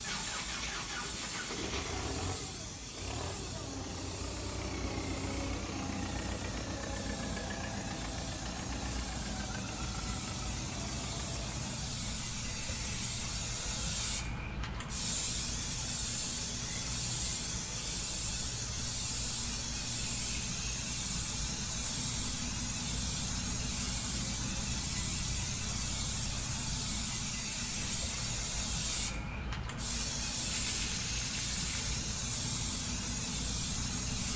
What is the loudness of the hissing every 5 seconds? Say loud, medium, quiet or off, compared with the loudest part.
medium, medium, loud, loud, loud, loud, loud.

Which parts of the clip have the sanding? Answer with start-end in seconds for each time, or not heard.
0.1-1.9, 30.5-32.0.